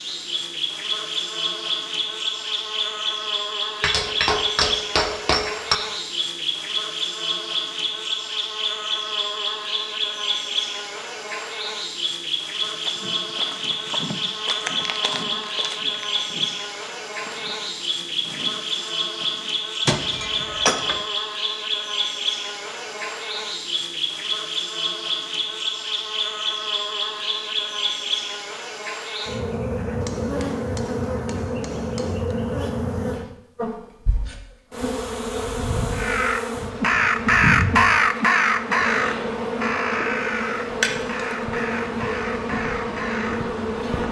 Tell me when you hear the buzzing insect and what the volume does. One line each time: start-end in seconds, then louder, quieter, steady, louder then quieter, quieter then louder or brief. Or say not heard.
0.0-44.0 steady.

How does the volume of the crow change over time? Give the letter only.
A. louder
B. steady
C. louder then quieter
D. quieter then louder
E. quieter
E.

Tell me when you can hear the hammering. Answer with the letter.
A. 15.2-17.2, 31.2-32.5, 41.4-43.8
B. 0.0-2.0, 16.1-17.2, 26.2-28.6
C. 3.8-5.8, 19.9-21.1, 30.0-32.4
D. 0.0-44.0
C.